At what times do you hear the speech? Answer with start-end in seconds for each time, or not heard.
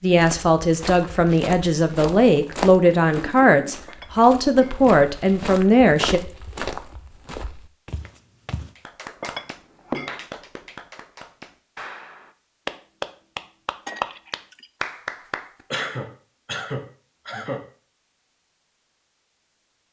0.0-6.2.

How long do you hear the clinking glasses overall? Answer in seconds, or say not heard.
3 s.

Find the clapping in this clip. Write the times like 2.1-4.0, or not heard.
8.8-15.7.